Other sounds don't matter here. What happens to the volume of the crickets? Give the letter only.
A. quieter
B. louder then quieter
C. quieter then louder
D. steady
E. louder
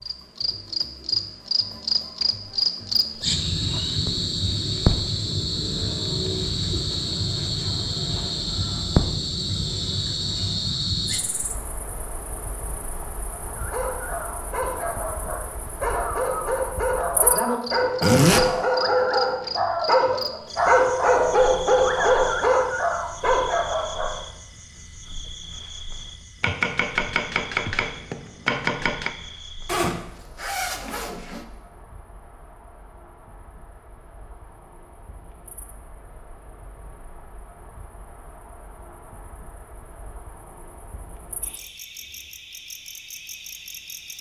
A.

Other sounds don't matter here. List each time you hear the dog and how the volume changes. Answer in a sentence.
The dog can be heard from 13.4 to 24.2 s, getting louder.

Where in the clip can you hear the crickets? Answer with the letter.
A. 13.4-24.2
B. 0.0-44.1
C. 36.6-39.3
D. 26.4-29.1
B.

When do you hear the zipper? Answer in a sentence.
You can hear the zipper from 18.0 to 18.4 s and from 29.6 to 31.4 s.